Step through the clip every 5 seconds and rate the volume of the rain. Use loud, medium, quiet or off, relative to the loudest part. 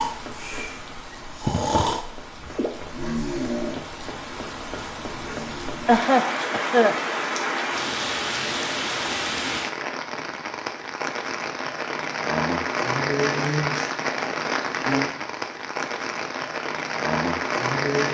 medium, loud, loud, loud.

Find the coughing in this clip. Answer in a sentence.
The coughing can be heard from 5.8 to 7.0 s.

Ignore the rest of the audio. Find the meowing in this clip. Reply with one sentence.
You can't hear the meowing here.